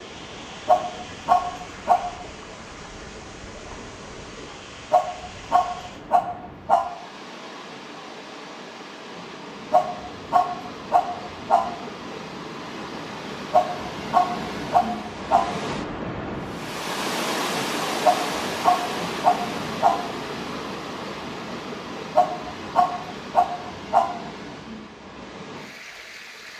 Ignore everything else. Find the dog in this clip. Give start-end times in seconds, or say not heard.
0.7-2.0, 4.9-6.8, 9.7-11.7, 13.5-15.5, 18.0-20.0, 22.1-24.1.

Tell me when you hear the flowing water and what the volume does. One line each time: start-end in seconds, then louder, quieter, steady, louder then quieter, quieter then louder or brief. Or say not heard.
0.0-26.5 louder then quieter.